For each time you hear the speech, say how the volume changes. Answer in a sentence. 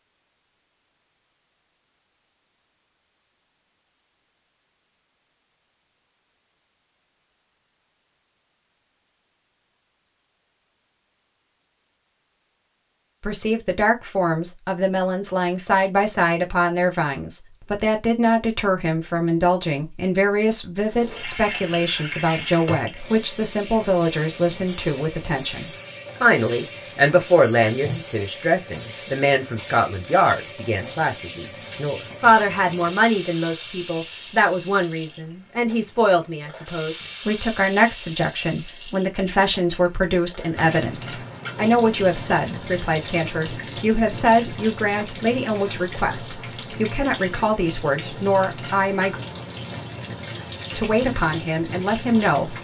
The speech can be heard from 13.2 to 49.1 s, at a steady volume; and briefly from 50.8 to 52.5 s.